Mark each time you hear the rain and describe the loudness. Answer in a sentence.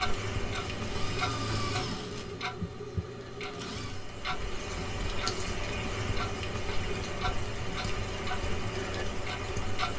You can hear the rain from 0.0 to 9.9 s, getting quieter then louder.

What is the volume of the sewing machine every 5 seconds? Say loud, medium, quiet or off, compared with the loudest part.
loud, off.